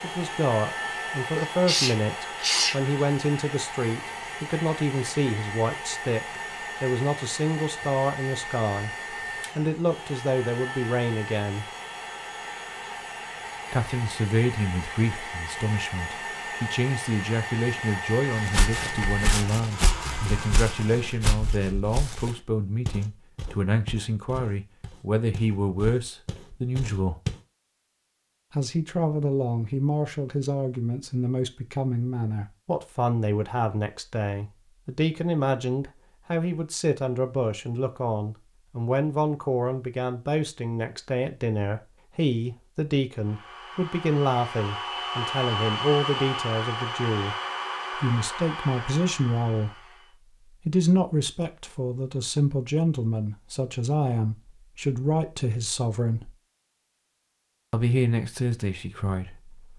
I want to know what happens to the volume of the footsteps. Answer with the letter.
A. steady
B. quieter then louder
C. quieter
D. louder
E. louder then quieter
C.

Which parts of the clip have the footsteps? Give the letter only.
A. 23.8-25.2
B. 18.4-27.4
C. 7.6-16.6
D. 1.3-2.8
B.